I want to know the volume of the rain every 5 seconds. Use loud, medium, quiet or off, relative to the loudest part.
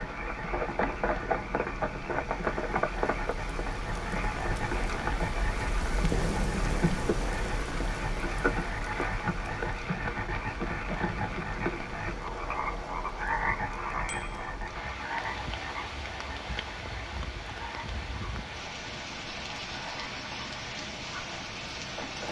medium, loud, medium, loud, loud.